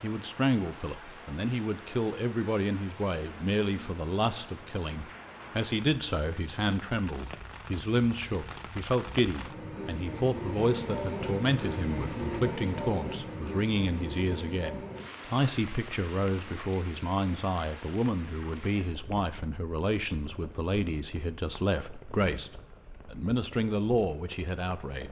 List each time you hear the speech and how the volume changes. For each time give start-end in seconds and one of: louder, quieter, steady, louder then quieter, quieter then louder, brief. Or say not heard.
0.0-25.0 steady.